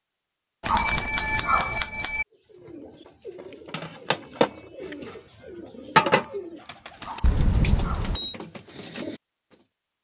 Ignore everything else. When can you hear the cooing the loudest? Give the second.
6 s.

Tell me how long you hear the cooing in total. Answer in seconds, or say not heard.
7 s.